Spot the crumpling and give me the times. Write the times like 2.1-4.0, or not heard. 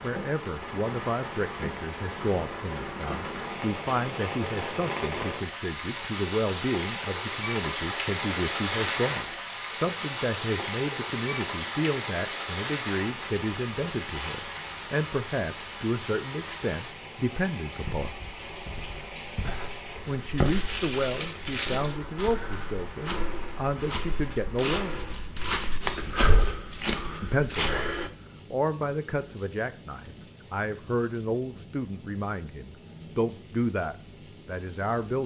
12.8-14.6, 20.4-21.9.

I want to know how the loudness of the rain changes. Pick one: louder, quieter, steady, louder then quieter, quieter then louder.
quieter.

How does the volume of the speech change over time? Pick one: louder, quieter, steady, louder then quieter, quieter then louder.
steady.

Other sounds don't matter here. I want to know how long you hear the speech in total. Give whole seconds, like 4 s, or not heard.
31 s.